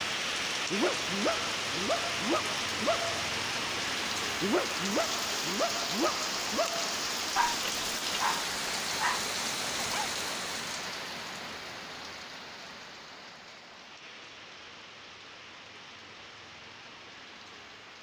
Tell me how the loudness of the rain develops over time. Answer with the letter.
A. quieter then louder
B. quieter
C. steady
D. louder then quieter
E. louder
B.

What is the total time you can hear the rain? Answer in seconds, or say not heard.
18 s.